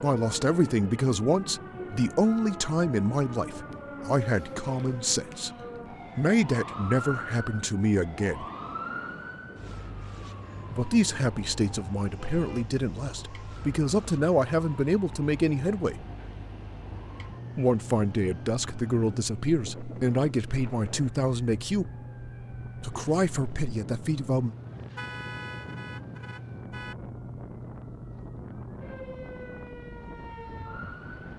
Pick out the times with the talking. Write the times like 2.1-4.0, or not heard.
0.0-5.5, 6.2-8.4, 10.7-16.1, 17.6-21.9, 22.8-24.6.